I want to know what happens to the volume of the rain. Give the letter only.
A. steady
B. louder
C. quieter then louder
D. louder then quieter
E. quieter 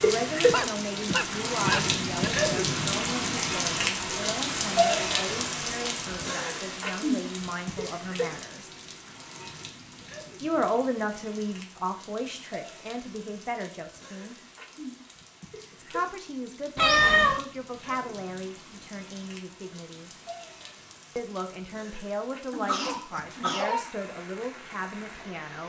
E.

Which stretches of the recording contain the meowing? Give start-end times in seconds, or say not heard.
16.8-17.4.